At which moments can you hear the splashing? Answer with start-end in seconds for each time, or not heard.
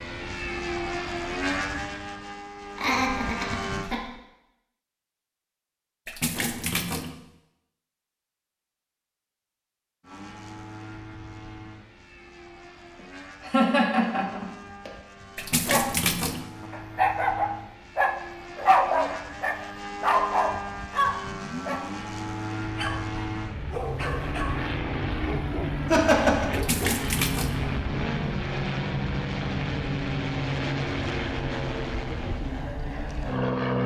6.0-7.1, 15.3-16.4, 26.5-27.6.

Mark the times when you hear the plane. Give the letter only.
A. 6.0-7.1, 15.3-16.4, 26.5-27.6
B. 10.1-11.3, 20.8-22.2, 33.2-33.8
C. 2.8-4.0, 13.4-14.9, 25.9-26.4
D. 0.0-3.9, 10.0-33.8
D.